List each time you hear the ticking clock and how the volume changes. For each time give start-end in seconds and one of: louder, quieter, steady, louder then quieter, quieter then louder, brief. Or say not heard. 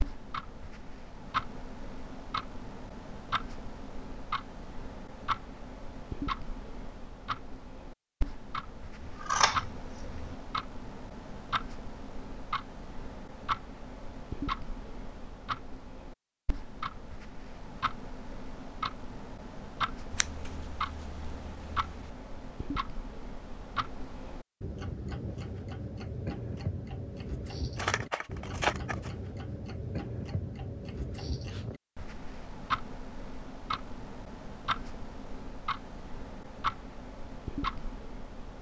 0.0-38.5 steady.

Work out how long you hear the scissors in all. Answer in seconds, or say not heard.
5 s.